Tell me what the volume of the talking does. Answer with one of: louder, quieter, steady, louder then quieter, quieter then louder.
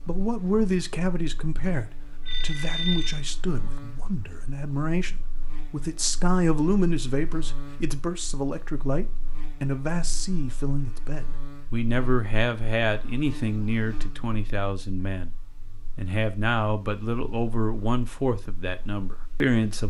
steady.